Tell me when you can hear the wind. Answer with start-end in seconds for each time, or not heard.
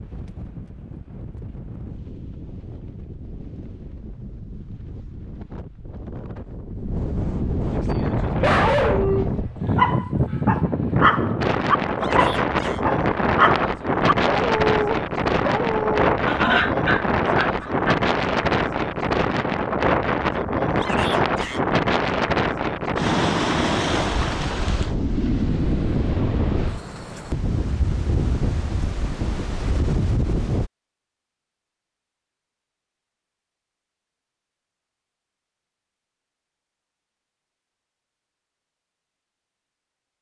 0.0-30.7.